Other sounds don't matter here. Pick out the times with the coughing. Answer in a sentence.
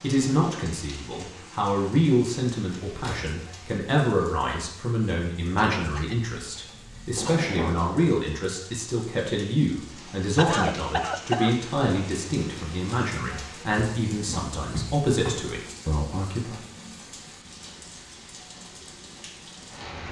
You can hear the coughing from 5.5 to 7.5 s and from 10.3 to 11.6 s.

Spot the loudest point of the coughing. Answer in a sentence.
The loudest moment of the coughing is at 11 seconds.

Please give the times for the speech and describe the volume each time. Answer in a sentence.
The speech can be heard from 0.0 to 16.6 s, at a steady volume.